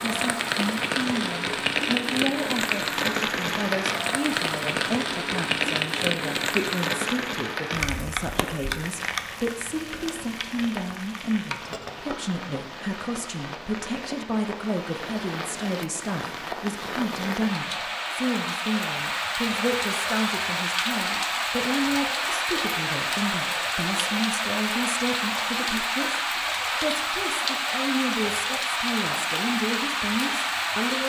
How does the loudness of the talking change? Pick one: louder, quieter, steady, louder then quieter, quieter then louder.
steady.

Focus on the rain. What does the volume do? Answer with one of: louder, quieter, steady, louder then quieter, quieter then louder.
quieter then louder.